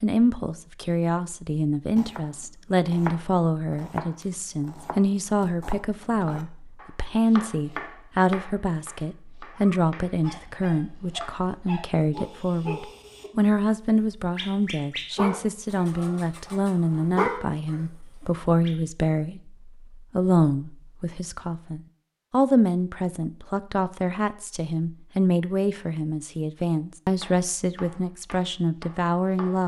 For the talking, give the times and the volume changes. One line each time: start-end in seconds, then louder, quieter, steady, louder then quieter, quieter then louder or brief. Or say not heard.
0.0-29.6 steady.